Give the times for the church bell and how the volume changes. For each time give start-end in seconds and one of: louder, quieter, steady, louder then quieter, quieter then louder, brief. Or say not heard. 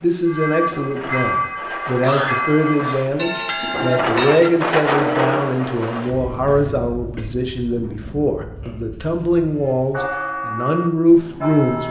0.2-6.3 steady
9.4-11.8 brief.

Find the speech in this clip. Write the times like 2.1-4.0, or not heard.
0.0-11.8.